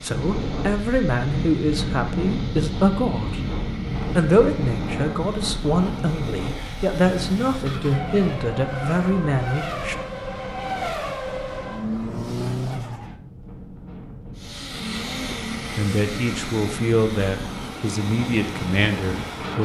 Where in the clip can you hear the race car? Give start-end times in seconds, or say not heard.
0.0-13.2, 14.3-19.6.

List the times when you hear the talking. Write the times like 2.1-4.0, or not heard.
0.0-3.5, 4.2-9.9, 15.3-19.6.